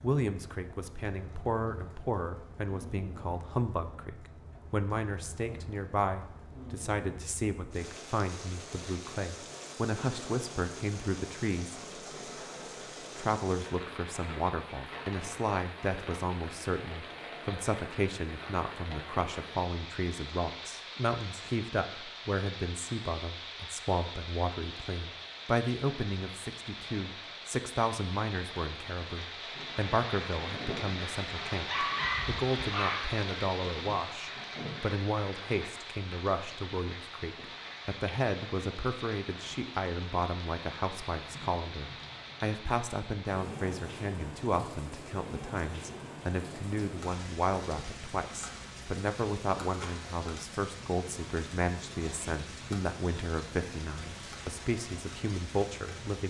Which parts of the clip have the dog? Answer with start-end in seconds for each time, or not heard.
31.6-33.2.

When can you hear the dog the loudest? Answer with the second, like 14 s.
32 s.